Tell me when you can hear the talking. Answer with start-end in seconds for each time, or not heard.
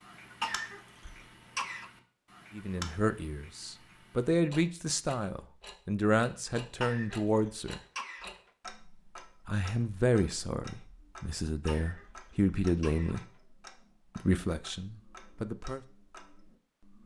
2.5-7.8, 9.4-13.2, 14.2-15.8.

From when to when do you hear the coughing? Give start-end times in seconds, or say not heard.
0.4-1.9, 6.8-8.3, 11.7-13.2.